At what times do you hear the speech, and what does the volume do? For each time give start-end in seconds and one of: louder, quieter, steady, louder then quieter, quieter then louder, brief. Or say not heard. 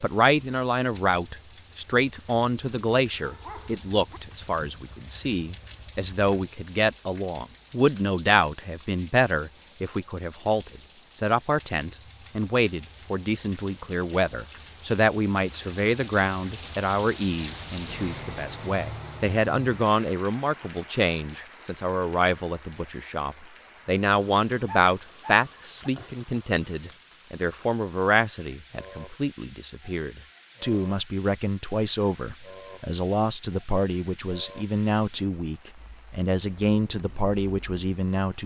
0.0-38.4 steady.